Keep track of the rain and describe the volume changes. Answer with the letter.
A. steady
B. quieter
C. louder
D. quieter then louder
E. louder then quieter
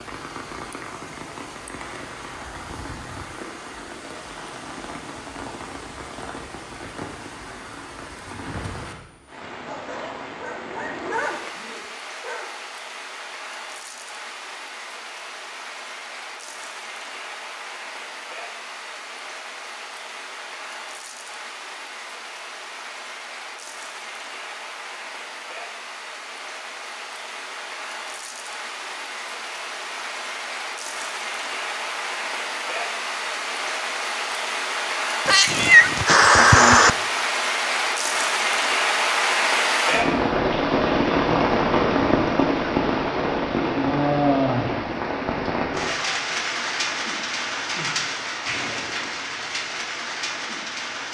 C.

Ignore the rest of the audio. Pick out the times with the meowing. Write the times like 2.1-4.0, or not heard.
35.2-36.9.